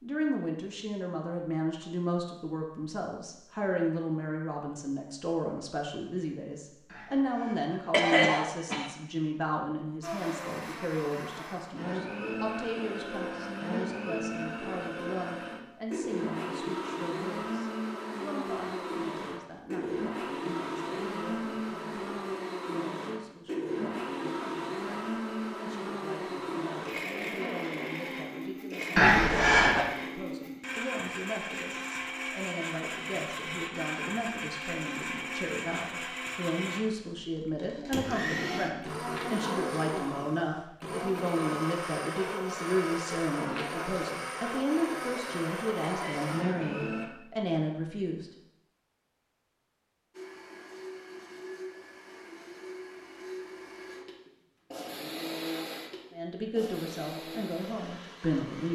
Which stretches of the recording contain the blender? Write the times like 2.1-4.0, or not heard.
10.0-47.1, 50.1-58.7.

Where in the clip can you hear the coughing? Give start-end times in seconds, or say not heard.
7.9-8.8, 28.9-29.9, 45.9-46.8.